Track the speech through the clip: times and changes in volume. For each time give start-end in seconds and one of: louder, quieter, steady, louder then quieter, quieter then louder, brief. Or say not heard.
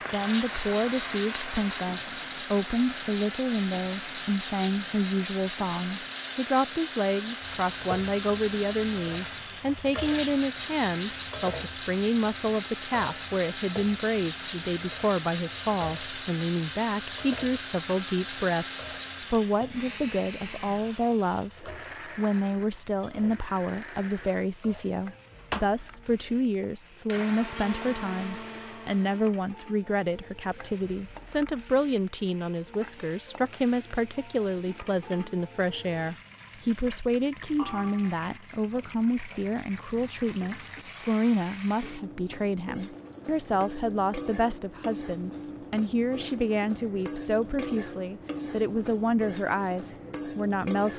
0.1-50.9 steady.